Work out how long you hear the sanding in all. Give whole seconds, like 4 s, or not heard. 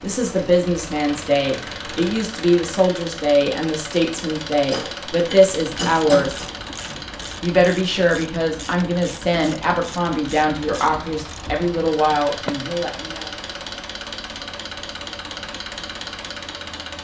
not heard.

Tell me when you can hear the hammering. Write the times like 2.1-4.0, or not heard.
4.7-6.5.